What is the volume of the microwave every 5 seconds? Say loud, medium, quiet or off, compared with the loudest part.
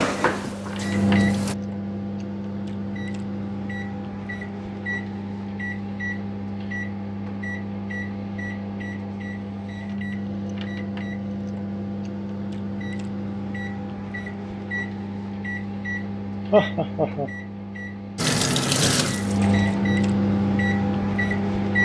medium, medium, medium, medium, loud.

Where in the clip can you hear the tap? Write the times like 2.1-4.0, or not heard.
0.0-1.6, 18.1-19.6.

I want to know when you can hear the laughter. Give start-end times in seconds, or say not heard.
16.5-17.3.